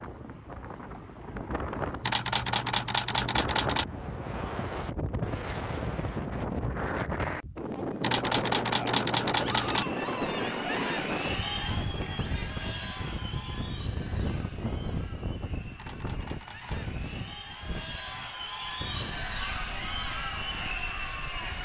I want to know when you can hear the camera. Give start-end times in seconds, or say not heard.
2.0-3.9, 8.0-9.8, 15.8-16.9.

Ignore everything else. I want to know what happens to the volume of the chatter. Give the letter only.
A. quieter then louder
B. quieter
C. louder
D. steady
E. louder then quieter
A.